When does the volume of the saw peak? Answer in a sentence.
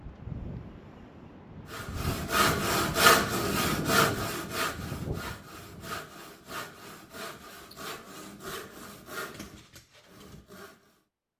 The loudest moment of the saw is at 3 seconds.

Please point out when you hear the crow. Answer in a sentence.
The crow can't be heard in this clip.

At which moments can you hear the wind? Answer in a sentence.
You can hear the wind from 0.0 to 6.0 s.